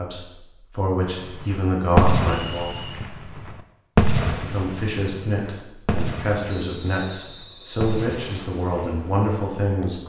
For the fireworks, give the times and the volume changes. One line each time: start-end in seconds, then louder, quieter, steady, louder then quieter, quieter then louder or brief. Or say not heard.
1.2-9.3 quieter.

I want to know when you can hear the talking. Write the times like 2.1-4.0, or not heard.
0.0-2.8, 4.3-10.0.